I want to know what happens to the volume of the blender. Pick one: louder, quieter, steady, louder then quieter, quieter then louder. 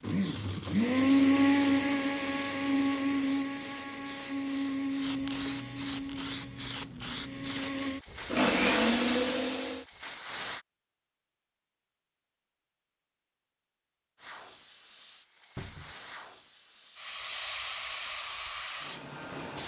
quieter then louder.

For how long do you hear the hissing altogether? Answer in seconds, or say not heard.
16 s.